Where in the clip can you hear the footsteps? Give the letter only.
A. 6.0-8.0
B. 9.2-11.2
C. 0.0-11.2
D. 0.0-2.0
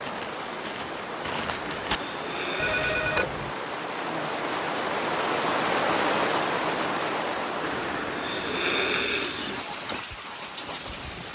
D.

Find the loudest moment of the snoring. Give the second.
9 s.